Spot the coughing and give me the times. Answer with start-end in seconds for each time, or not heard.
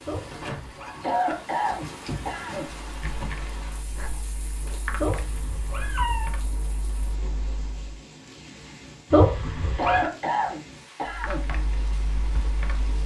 1.0-2.6, 9.8-11.5.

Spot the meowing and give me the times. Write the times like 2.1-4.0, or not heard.
0.1-1.0, 5.0-6.3, 9.1-10.1.